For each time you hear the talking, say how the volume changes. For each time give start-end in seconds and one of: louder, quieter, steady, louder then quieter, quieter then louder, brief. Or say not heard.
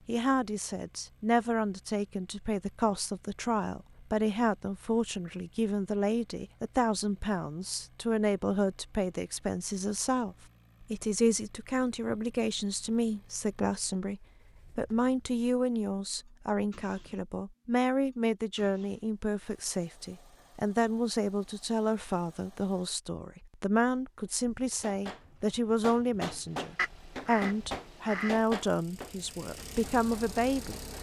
0.1-30.8 steady.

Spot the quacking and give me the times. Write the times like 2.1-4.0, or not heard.
26.8-28.4.